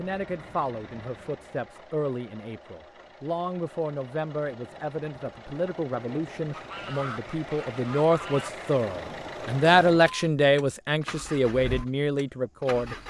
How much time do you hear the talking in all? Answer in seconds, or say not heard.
13 s.